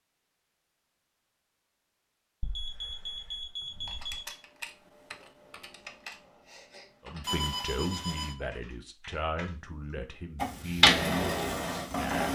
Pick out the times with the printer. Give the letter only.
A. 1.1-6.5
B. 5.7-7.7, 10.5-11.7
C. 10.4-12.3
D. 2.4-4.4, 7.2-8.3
C.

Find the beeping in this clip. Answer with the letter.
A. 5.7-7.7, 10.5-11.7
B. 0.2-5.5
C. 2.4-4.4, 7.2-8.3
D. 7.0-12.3
C.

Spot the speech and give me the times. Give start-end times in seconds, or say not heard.
7.0-12.3.